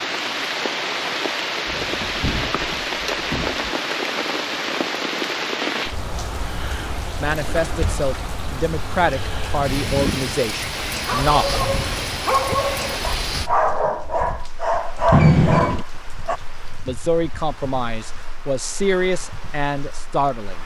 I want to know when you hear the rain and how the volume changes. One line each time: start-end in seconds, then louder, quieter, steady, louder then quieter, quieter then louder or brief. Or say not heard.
0.0-20.6 quieter.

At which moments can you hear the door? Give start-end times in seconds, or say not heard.
1.6-3.7, 7.6-8.1, 15.1-15.8.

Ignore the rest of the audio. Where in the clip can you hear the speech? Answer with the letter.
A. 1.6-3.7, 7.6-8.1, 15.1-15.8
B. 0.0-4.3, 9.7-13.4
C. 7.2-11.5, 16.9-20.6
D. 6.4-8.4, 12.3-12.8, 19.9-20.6
C.